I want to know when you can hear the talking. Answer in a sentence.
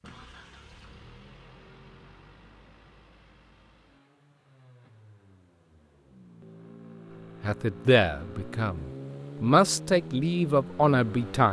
The talking can be heard from 7.4 to 11.4 s.